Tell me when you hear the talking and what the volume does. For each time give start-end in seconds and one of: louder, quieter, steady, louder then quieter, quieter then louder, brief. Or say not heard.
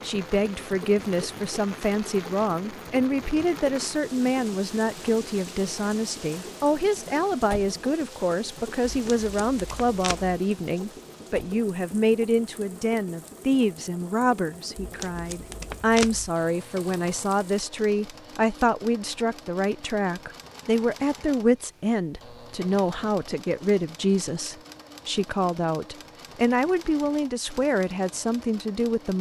0.0-29.1 steady.